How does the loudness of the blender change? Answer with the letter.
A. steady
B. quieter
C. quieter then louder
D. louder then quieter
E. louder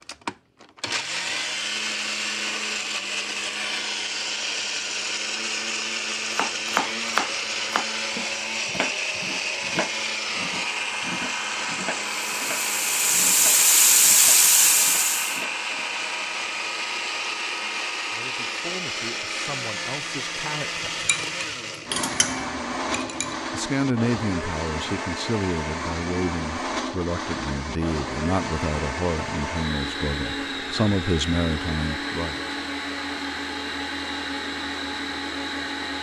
A.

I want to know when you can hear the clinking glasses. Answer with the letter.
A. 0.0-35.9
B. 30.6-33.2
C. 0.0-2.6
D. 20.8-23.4
D.